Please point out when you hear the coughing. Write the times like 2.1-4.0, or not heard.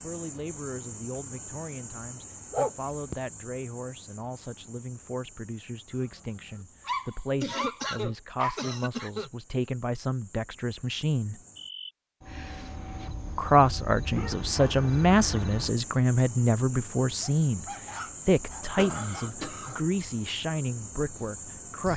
7.4-9.3, 18.8-19.8.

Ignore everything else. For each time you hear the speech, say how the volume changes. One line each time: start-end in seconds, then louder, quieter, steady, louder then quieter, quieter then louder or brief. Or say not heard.
0.0-11.4 louder
13.3-21.9 quieter.